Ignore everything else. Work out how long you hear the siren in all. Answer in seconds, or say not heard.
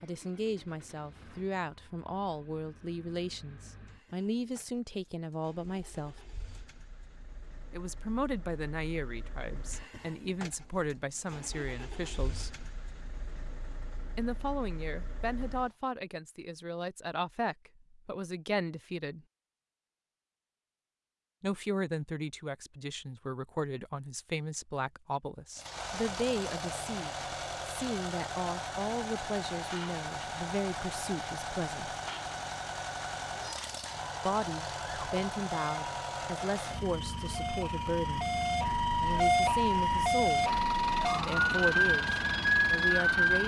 9 s.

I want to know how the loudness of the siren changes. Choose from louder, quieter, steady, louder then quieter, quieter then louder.
louder.